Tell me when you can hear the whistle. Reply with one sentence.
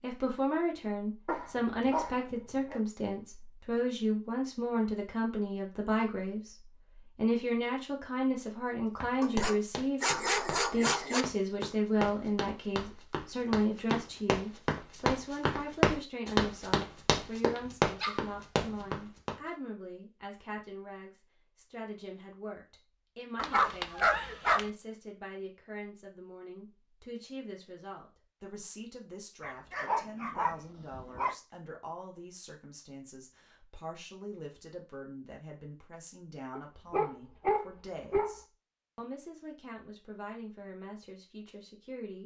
The whistle can't be heard in this clip.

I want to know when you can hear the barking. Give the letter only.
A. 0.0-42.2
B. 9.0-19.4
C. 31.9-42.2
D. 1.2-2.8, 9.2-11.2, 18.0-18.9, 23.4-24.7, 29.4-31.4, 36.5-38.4
D.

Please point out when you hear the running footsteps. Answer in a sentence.
You can hear the running footsteps from 9.0 to 19.4 s.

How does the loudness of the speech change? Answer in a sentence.
The loudness of the speech goes down.